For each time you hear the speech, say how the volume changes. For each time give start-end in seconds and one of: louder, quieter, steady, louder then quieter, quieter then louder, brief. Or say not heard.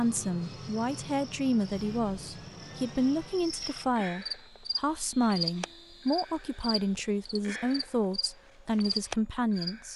0.0-9.9 steady.